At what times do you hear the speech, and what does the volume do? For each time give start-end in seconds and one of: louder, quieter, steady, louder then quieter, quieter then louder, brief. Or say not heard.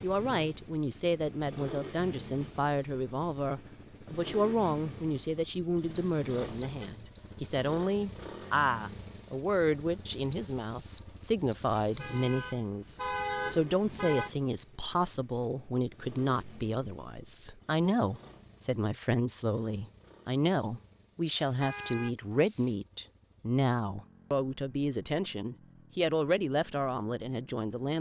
0.0-27.9 steady.